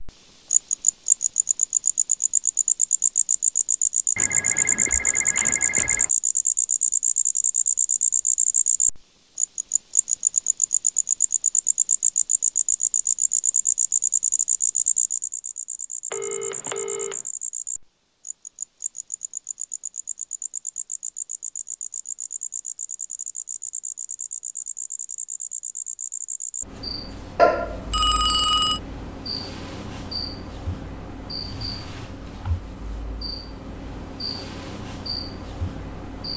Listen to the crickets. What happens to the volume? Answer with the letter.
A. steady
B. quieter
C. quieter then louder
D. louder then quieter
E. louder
B.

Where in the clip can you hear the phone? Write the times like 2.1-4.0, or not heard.
4.2-6.1, 16.1-17.2, 27.4-28.8.